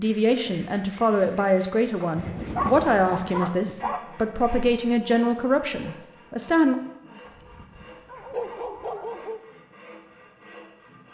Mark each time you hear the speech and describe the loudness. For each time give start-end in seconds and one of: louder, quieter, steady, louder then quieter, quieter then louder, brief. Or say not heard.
0.0-6.8 steady.